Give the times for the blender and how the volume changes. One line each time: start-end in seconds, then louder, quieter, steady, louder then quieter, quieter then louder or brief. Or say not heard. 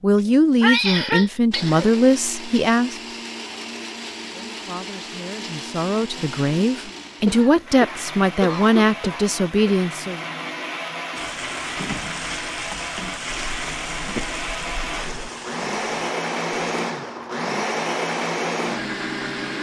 1.5-19.5 louder.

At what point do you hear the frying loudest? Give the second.
12 s.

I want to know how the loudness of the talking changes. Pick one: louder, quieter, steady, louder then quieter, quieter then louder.
quieter then louder.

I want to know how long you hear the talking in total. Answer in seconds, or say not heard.
9 s.